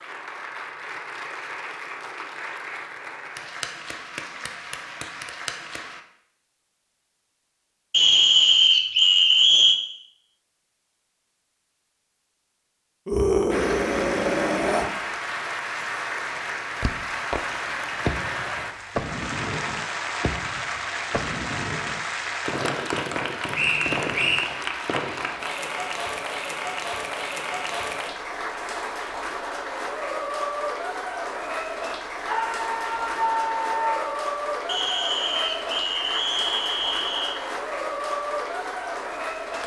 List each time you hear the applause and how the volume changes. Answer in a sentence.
You can hear the applause from 0.0 to 6.0 s, at a steady volume; and from 13.5 to 39.6 s, at a steady volume.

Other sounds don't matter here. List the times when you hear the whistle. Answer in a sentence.
The whistle can be heard from 7.9 to 9.8 s, from 23.6 to 24.5 s and from 34.6 to 37.4 s.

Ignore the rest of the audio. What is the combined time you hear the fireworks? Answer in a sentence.
The fireworks can be heard for 9 seconds in total.